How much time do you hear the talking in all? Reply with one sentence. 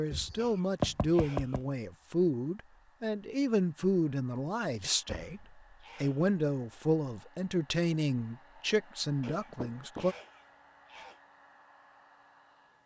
The talking can be heard for 10 seconds in total.